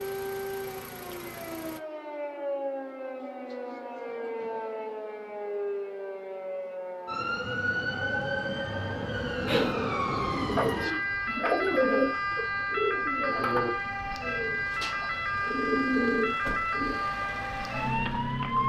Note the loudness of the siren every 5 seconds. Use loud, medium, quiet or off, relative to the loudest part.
medium, loud, loud, loud.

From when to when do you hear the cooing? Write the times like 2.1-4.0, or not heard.
9.4-17.1.